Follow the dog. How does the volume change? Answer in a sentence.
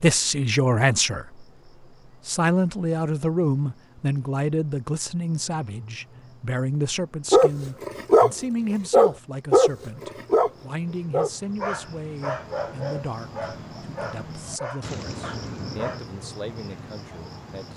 The loudness of the dog goes down.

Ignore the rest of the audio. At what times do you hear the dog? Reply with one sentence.
The dog can be heard from 7.3 to 16.0 s.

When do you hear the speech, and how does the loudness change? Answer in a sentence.
The speech can be heard briefly from 0.0 to 1.4 s; and from 2.2 to 17.7 s, getting quieter.